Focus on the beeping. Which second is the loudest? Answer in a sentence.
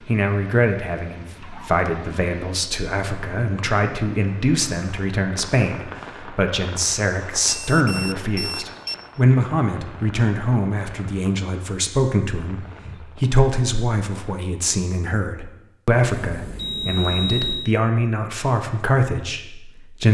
The loudest moment of the beeping is at 17 seconds.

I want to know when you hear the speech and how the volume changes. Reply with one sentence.
You can hear the speech from 0.0 to 20.0 s, at a steady volume.